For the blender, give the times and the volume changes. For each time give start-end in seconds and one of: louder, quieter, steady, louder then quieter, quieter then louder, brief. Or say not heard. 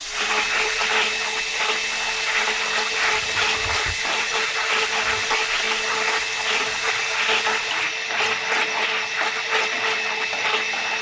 0.0-10.9 steady.